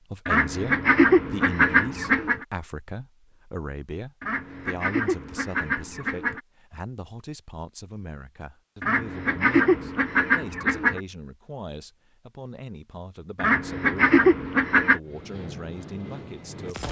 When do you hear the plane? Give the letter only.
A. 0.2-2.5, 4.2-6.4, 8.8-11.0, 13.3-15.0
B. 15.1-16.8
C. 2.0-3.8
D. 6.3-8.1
B.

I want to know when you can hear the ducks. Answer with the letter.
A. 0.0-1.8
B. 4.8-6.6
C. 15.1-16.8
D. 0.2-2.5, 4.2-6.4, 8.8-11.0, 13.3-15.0
D.